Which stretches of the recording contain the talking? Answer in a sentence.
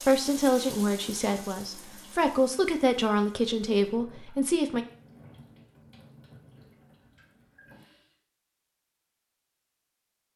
The talking can be heard from 0.1 to 4.8 s.